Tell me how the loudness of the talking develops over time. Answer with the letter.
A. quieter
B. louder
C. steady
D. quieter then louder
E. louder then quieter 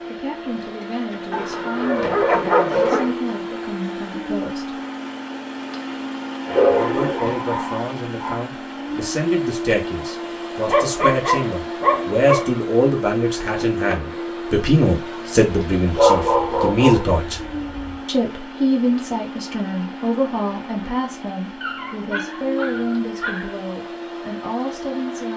E.